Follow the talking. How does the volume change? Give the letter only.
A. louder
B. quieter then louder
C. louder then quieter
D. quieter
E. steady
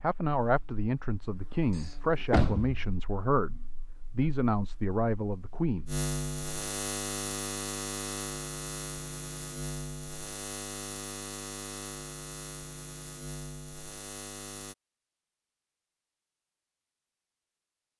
E.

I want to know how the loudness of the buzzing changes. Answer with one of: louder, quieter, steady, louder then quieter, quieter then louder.
louder then quieter.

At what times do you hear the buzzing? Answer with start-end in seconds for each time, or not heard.
0.2-14.8.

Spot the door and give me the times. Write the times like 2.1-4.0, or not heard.
1.7-2.9.